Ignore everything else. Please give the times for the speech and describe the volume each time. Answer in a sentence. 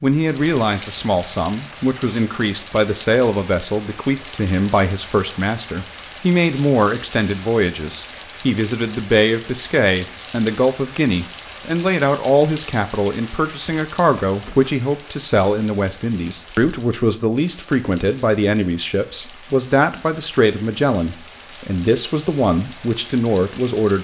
The speech can be heard from 0.0 to 23.9 s, at a steady volume.